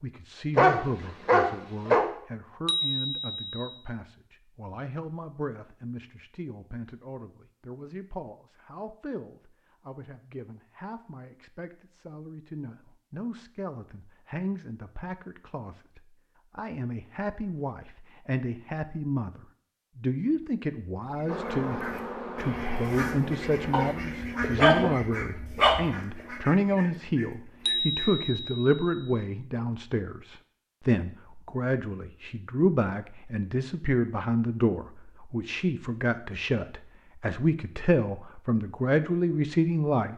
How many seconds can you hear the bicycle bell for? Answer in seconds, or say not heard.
3 s.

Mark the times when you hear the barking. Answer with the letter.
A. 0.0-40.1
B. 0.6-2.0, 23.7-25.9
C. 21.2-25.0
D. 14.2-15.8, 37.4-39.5
B.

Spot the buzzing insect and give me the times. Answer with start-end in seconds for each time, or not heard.
21.2-25.0.